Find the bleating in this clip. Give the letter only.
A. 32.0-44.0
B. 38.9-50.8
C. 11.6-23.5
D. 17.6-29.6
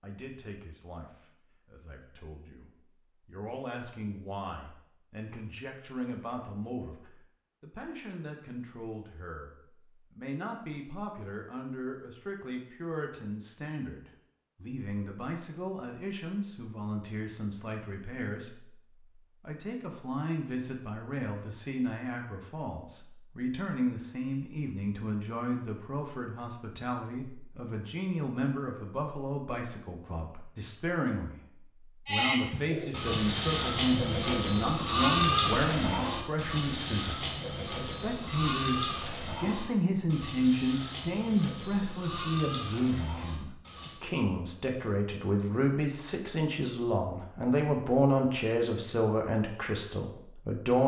A.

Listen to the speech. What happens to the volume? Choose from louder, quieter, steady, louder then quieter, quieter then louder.
louder.